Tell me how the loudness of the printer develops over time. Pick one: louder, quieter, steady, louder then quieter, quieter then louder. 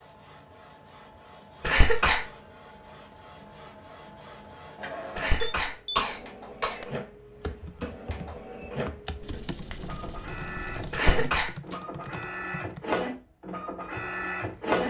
louder.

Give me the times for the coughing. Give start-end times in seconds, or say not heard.
1.6-2.2, 5.2-6.8, 10.9-11.8.